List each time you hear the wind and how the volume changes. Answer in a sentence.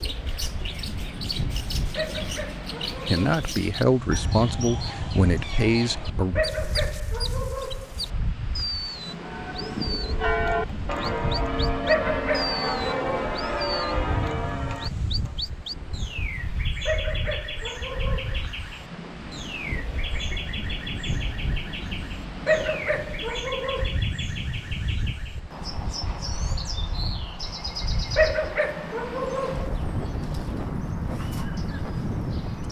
The wind can be heard from 0.0 to 32.6 s, at a steady volume.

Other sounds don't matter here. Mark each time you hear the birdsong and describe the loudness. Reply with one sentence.
You can hear the birdsong from 0.0 to 32.6 s, at a steady volume.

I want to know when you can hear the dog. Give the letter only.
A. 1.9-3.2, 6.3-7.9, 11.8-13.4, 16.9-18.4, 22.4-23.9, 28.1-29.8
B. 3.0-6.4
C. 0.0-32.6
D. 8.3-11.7
A.